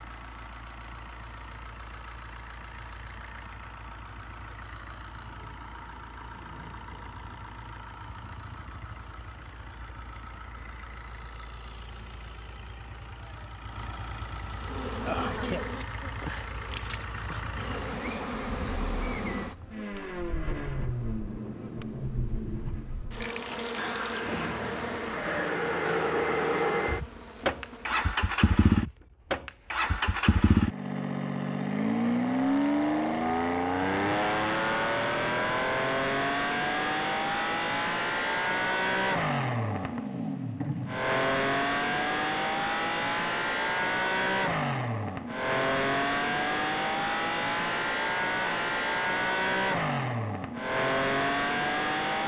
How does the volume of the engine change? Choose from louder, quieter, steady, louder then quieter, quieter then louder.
louder.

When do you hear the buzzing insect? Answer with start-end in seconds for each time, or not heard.
14.6-28.2.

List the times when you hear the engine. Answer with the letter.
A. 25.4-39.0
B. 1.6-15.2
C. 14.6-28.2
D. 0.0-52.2
D.